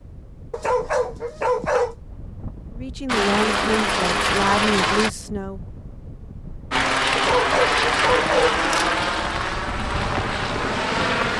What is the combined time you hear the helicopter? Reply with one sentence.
The helicopter can be heard for 7 seconds in total.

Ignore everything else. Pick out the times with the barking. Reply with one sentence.
You can hear the barking from 0.5 to 1.9 s and from 7.2 to 8.8 s.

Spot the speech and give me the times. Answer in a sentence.
The speech can be heard from 2.8 to 5.6 s.